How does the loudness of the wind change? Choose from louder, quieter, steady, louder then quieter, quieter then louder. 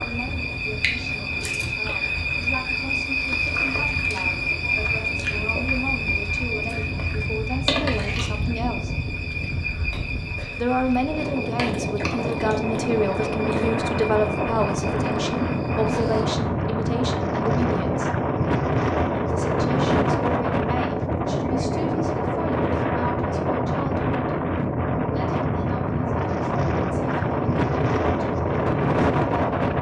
louder.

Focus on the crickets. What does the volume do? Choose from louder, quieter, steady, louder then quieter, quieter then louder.
quieter.